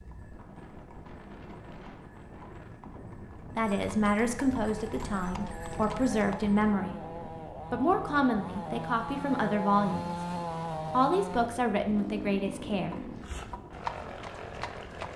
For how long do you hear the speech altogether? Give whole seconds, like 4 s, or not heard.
8 s.